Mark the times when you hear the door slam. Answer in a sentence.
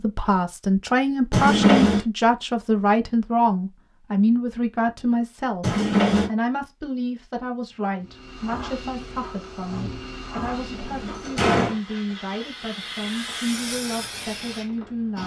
You can hear the door slam from 1.3 to 2.0 s, from 5.6 to 6.3 s and from 10.4 to 11.8 s.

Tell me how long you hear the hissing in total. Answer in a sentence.
The hissing can be heard for 7 seconds in total.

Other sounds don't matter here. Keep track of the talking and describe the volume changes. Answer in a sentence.
The loudness of the talking goes down.